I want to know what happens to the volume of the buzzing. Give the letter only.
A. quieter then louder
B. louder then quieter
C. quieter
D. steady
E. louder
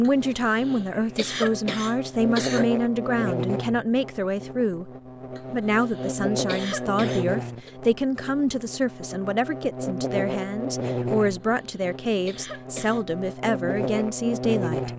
D.